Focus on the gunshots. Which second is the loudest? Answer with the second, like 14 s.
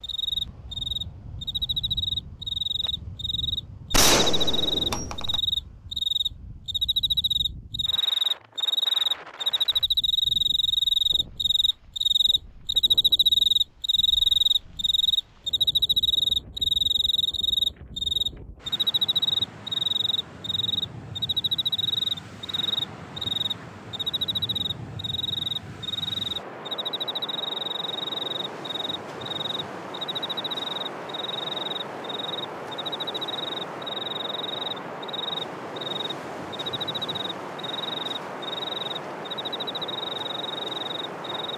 4 s.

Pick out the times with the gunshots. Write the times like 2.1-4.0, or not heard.
3.9-5.4.